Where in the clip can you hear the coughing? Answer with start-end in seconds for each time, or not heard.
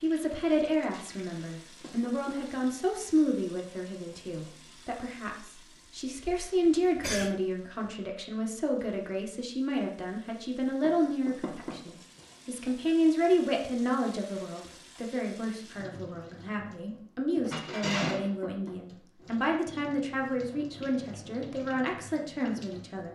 6.2-7.3.